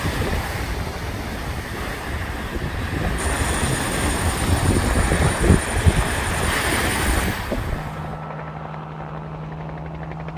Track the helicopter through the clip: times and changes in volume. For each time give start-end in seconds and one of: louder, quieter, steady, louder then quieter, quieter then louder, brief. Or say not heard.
3.1-10.3 steady.